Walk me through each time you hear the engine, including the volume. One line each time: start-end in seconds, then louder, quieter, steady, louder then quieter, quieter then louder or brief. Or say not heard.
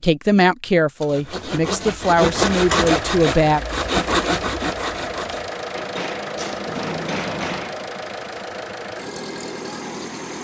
2.2-10.4 steady.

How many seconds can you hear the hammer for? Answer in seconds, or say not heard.
2 s.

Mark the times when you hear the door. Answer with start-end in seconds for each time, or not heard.
6.3-7.8.